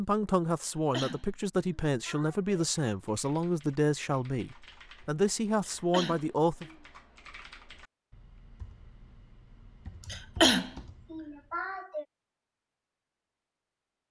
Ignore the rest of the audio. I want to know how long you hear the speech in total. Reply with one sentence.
You can hear the speech for 7 seconds altogether.